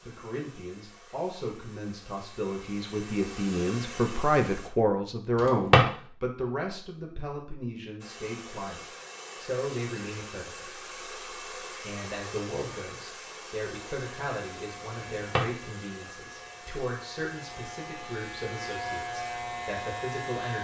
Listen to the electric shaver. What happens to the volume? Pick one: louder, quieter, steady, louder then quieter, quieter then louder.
louder.